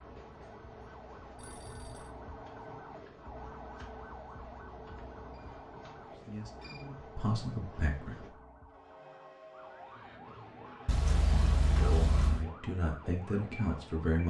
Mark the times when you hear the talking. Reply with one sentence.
You can hear the talking from 6.1 to 8.2 s and from 11.7 to 14.2 s.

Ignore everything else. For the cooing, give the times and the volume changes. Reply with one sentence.
You can't hear the cooing here.